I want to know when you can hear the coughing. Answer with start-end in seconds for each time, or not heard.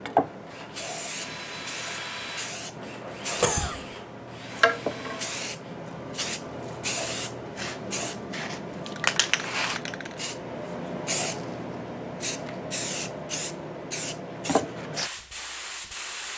3.4-3.9.